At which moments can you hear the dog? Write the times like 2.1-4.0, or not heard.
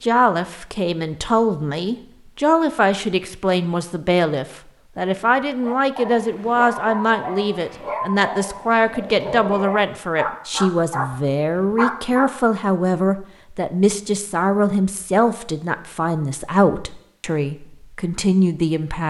5.5-12.3.